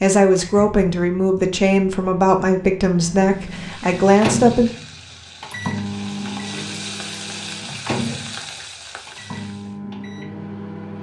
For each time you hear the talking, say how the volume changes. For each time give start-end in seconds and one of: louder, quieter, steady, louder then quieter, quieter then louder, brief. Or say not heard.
0.0-4.8 steady.